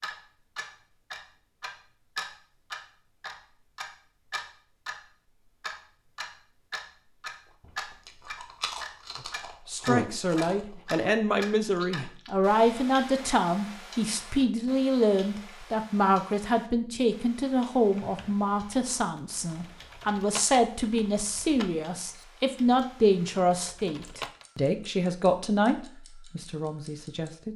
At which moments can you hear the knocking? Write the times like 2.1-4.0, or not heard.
not heard.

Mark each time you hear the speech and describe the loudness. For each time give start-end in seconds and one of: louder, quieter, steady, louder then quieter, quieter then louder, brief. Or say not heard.
9.7-27.5 steady.